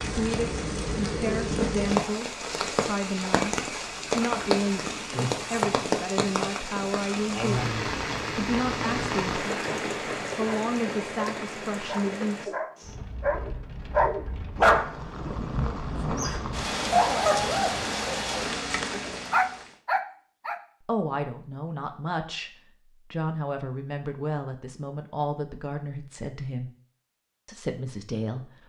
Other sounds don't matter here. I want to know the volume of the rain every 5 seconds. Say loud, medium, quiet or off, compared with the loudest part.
loud, loud, medium, loud, off, off.